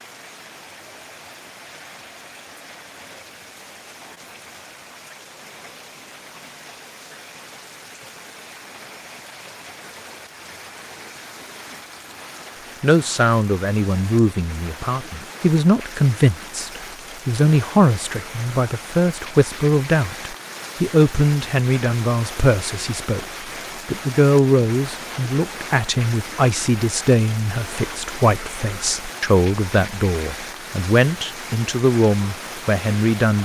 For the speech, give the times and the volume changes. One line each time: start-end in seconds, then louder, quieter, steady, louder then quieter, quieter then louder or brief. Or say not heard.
12.8-23.2 steady
23.9-33.4 steady.